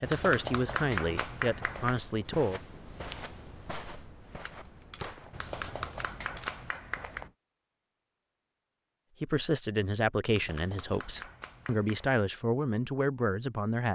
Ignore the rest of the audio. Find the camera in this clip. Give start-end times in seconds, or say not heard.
4.3-6.6.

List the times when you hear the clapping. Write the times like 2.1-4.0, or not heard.
0.0-2.0, 5.3-7.3, 10.2-12.2.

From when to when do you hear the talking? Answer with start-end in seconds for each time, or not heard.
0.0-2.6, 9.2-13.9.